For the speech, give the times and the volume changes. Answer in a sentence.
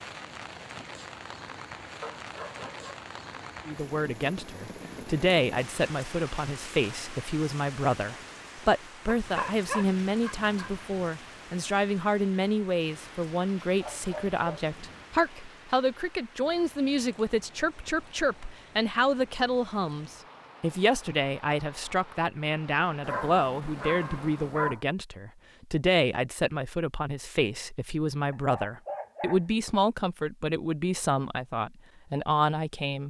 The speech can be heard from 3.6 to 33.0 s, at a steady volume.